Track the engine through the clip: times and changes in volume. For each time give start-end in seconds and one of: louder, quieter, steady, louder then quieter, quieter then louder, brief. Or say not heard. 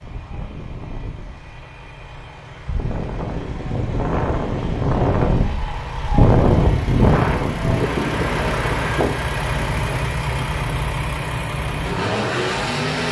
0.0-13.0 louder.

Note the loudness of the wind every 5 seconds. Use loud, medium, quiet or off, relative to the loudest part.
medium, loud, quiet.